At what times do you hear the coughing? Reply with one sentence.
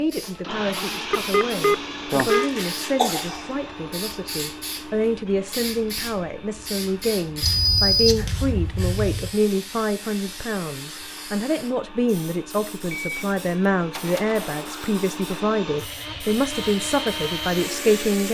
You can hear the coughing from 2.2 to 3.5 s.